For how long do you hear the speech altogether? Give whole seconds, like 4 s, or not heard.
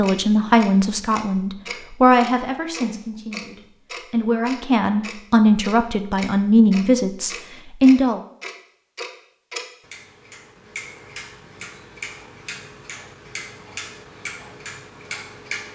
8 s.